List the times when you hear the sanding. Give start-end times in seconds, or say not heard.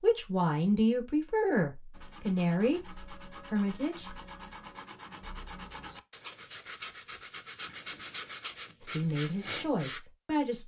1.9-10.0.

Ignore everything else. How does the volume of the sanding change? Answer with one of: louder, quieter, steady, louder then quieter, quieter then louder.
louder.